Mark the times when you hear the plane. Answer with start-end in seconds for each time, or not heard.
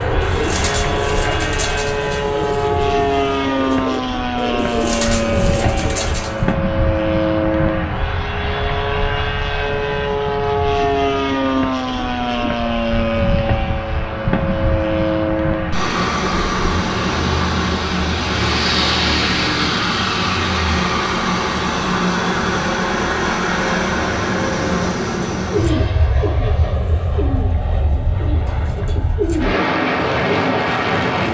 0.0-31.2.